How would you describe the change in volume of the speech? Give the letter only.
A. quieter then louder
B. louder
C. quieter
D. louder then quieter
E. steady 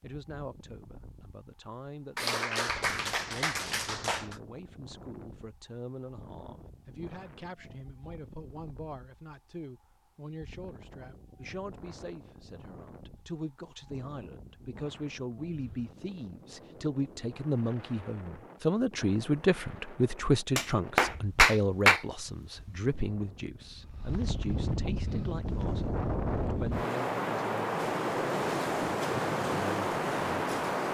D.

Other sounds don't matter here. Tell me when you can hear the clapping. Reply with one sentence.
The clapping can be heard from 2.1 to 4.3 s and from 20.6 to 22.0 s.